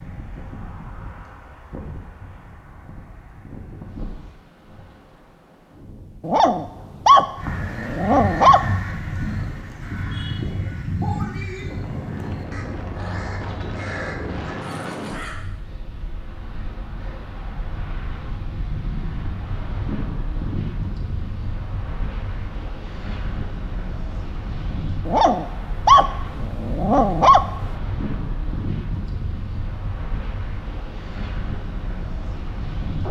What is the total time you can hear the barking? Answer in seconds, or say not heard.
5 s.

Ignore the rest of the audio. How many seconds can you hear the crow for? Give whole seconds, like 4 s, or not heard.
8 s.